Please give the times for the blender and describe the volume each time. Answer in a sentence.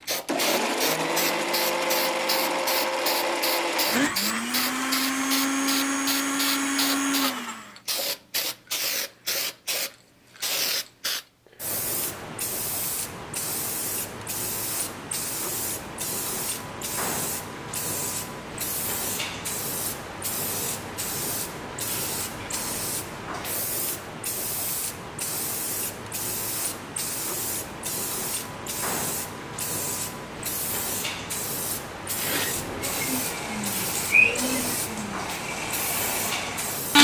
You can hear the blender from 0.2 to 7.8 s, at a steady volume; and from 32.0 to 36.9 s, getting louder then quieter.